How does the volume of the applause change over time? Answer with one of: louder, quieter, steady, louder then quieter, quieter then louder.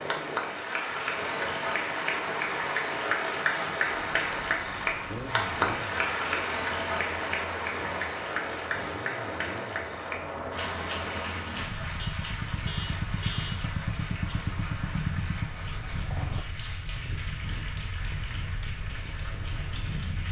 quieter.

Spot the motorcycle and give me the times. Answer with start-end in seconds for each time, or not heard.
5.0-16.4.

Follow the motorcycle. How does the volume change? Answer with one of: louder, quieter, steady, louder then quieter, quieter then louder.
louder.